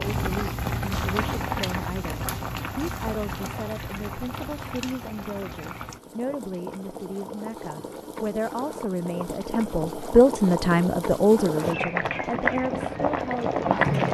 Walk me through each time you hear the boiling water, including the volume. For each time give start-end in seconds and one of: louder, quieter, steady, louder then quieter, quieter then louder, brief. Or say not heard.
0.0-14.1 quieter then louder.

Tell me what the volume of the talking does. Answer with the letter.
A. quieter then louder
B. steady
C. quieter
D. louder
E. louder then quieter
D.